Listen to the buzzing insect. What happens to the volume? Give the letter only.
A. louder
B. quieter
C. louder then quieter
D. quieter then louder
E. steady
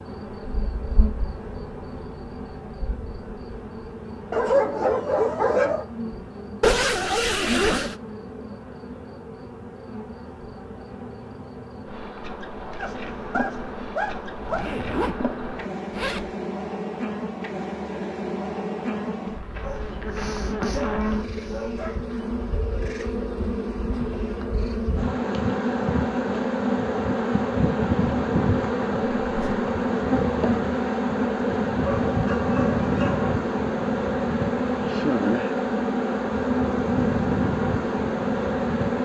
A.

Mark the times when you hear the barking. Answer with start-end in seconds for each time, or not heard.
4.3-5.8, 12.8-14.7, 19.6-22.1, 31.8-33.4.